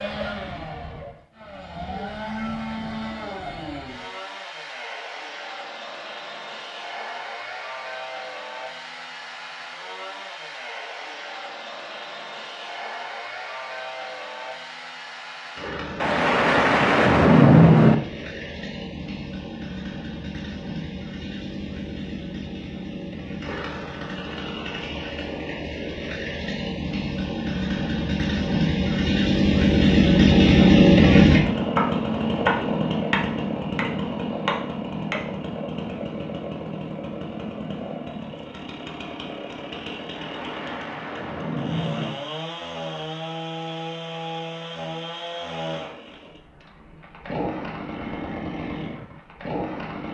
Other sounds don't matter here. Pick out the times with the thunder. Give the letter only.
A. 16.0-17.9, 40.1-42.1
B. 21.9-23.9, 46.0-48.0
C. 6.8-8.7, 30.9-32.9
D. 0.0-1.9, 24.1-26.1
A.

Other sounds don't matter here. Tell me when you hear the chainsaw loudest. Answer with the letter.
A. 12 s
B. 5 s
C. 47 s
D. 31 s
D.